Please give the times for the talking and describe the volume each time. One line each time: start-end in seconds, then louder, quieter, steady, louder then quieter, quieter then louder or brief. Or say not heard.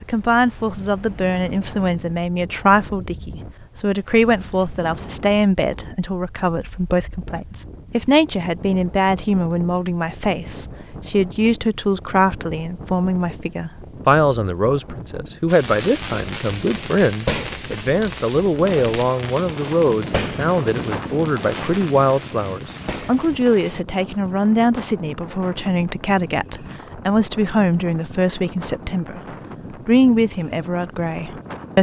0.0-29.2 steady
29.9-31.7 brief.